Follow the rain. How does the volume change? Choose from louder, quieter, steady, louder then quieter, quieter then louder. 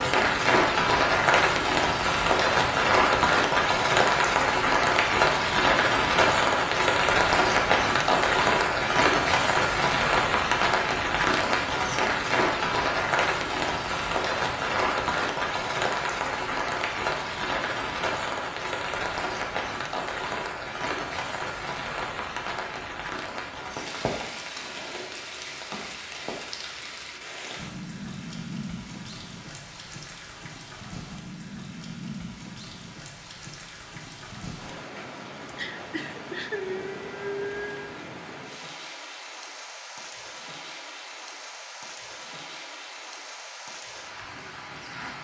quieter.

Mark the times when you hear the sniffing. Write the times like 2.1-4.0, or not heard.
35.5-38.0.